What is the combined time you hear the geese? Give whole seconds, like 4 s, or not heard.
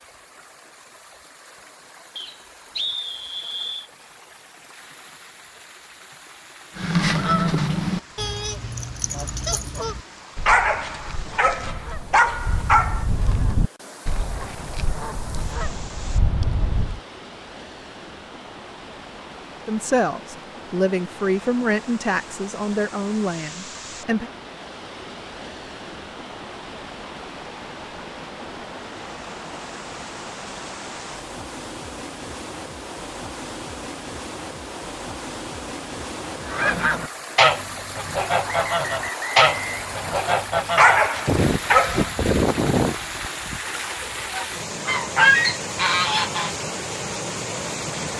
20 s.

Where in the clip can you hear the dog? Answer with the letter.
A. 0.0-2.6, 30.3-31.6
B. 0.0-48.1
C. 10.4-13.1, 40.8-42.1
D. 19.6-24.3
C.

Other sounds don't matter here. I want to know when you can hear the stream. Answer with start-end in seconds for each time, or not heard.
0.0-48.1.